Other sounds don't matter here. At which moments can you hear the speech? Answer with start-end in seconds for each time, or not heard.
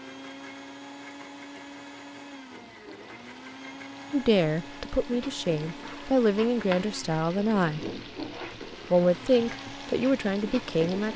4.1-7.8, 8.9-11.1.